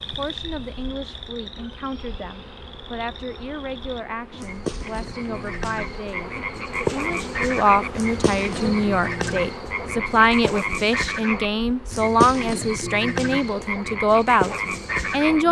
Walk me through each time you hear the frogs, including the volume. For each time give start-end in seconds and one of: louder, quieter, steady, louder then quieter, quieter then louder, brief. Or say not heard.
0.0-15.4 louder.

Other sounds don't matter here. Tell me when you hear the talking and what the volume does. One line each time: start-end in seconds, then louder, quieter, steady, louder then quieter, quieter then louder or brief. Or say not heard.
0.0-15.4 louder.